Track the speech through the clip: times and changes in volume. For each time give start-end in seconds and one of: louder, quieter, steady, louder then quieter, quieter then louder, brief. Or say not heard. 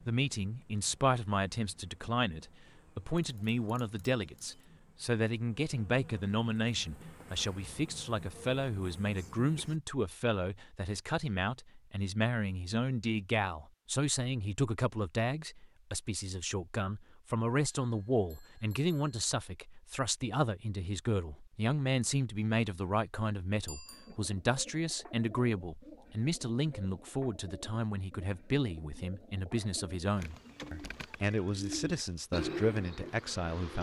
0.1-33.7 steady.